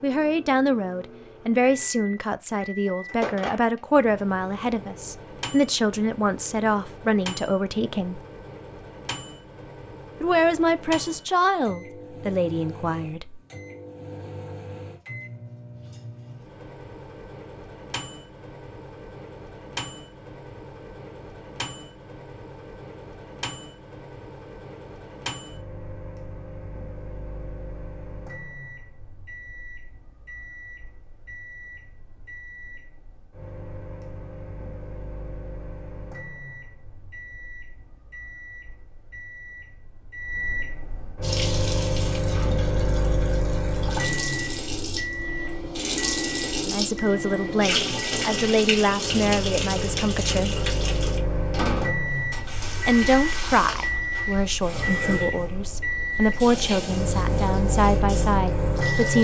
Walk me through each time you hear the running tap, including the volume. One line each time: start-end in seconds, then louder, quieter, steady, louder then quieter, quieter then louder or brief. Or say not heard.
41.2-59.1 louder then quieter.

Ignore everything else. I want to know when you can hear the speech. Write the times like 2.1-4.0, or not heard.
0.0-8.2, 10.2-13.4, 46.6-50.5, 52.9-59.1.